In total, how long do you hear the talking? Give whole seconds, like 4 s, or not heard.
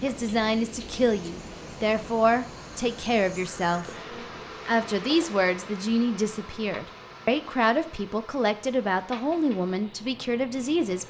10 s.